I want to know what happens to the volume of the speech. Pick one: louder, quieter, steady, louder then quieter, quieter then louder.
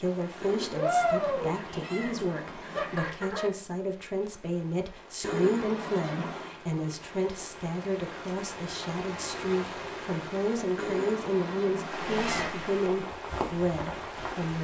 steady.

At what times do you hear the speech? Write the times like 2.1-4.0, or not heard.
0.0-14.5.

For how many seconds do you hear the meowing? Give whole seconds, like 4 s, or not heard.
6 s.